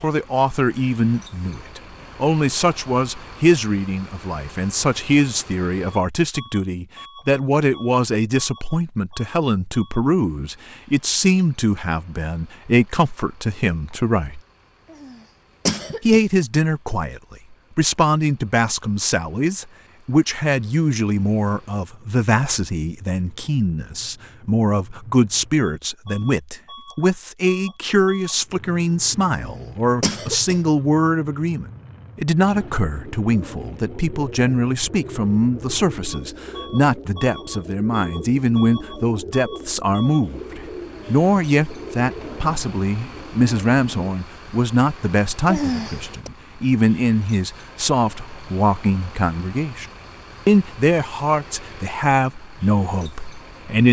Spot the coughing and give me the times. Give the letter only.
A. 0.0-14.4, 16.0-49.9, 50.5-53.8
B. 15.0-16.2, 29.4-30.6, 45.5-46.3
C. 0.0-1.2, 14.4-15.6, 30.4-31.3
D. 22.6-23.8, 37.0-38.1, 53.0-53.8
B.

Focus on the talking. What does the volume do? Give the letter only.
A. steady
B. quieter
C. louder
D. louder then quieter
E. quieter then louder
A.